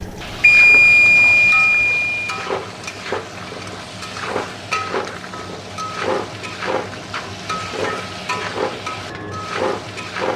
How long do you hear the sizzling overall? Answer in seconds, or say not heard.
10 s.